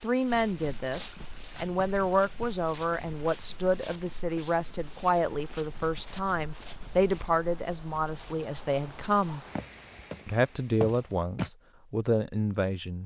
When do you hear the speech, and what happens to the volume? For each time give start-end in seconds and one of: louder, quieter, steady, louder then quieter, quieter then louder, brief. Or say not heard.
0.0-9.4 steady
10.2-13.0 brief.